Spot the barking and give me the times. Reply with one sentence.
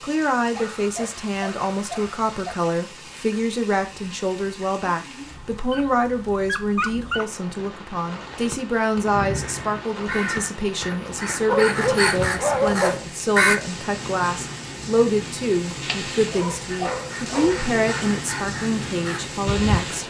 The barking can be heard from 0.5 to 2.6 s, from 5.7 to 7.3 s, from 11.1 to 13.1 s and from 15.7 to 17.6 s.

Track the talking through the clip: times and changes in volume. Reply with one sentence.
You can hear the talking from 0.0 to 20.0 s, at a steady volume.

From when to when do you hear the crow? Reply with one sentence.
The crow can be heard from 9.0 to 13.6 s and from 16.6 to 20.0 s.